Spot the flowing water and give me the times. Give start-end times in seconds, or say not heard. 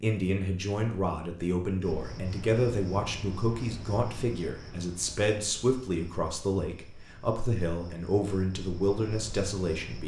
not heard.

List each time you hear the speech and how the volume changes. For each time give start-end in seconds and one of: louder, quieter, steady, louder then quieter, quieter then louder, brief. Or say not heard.
0.0-10.0 steady.